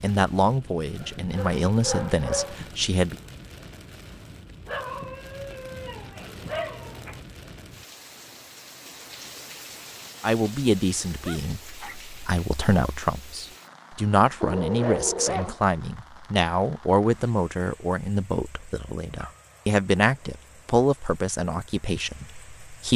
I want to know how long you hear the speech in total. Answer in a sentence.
The speech can be heard for 16 seconds in total.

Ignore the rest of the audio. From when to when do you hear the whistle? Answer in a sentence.
You can't hear the whistle here.